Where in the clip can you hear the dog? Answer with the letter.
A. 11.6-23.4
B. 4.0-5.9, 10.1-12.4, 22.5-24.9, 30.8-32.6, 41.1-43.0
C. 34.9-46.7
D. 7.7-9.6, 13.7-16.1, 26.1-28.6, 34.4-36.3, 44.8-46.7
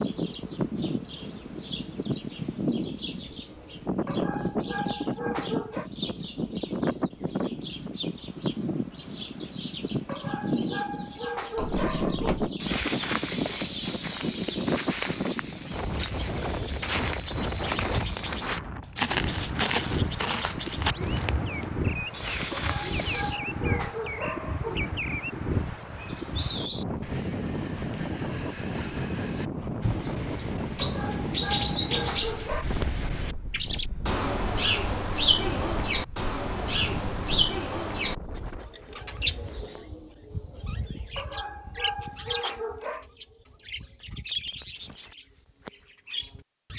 B.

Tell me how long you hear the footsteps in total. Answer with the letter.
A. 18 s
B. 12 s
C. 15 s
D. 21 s
B.